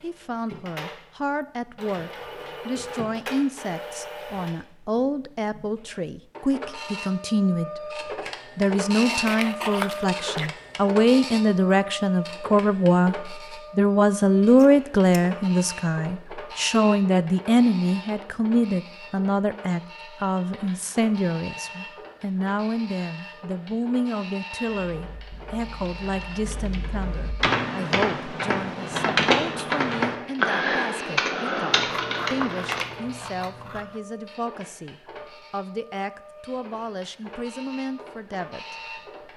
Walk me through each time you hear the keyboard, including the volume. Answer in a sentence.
You can hear the keyboard from 24.9 to 32.9 s, getting louder.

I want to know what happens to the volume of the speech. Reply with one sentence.
The loudness of the speech goes up, then down.